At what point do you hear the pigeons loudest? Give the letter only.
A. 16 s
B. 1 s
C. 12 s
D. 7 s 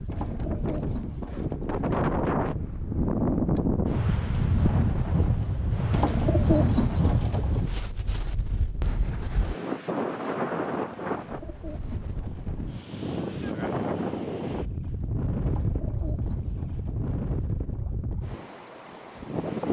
D.